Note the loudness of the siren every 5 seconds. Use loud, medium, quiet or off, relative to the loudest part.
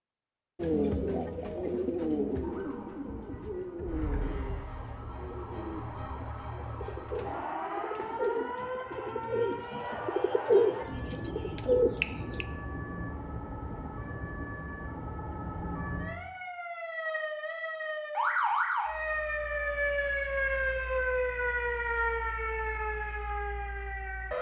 medium, medium, medium, loud, loud.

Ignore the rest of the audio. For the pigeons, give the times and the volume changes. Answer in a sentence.
You can hear the pigeons from 0.6 to 12.4 s, getting quieter then louder.